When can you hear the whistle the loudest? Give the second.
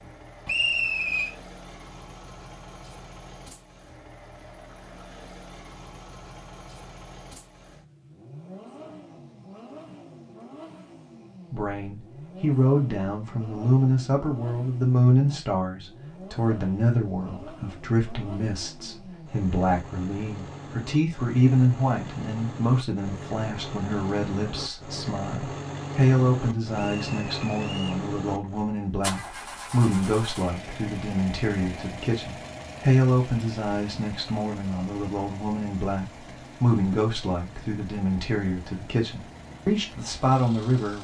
1 s.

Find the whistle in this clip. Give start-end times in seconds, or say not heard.
0.5-1.3, 26.8-28.1.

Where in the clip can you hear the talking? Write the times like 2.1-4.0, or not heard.
11.5-41.0.